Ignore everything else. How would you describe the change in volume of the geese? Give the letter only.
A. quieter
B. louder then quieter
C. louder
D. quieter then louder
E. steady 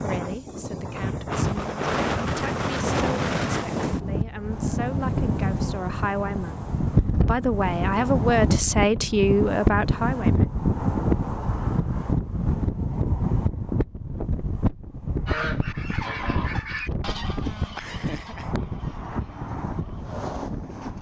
A.